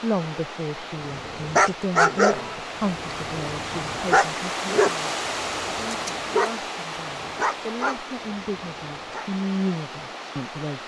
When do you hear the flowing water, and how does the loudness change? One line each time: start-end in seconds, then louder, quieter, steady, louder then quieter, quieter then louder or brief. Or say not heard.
0.0-10.8 louder then quieter.